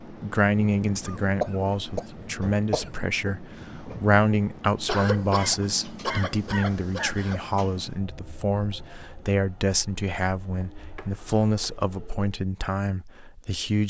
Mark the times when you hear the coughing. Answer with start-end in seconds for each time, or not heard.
1.1-3.0, 4.8-7.5, 10.6-11.8.